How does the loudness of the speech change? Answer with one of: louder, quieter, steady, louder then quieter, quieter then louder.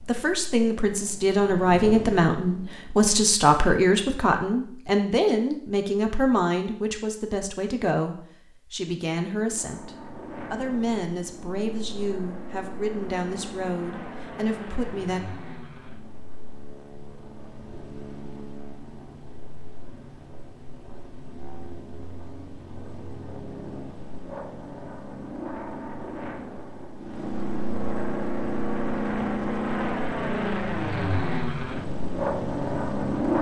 quieter.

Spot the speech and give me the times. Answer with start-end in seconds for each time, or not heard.
0.0-15.2.